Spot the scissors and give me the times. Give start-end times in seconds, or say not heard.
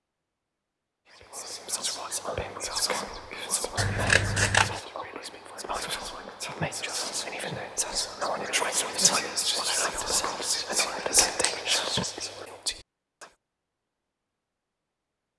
3.8-4.8, 11.0-12.1.